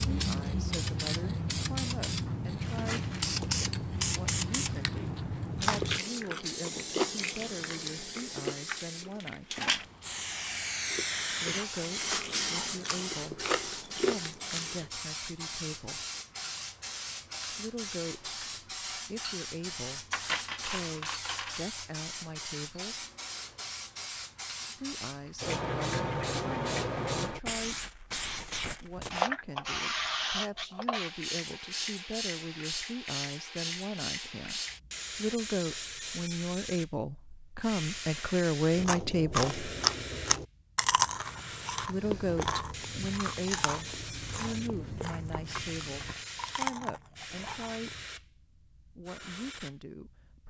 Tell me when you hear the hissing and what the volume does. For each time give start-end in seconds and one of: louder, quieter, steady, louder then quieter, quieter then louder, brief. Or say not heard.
0.0-50.4 quieter.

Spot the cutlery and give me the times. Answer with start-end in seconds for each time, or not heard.
20.1-21.6.